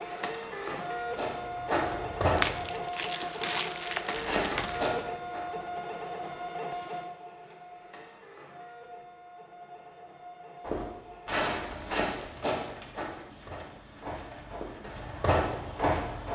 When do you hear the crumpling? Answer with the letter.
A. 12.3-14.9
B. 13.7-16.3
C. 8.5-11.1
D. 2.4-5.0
D.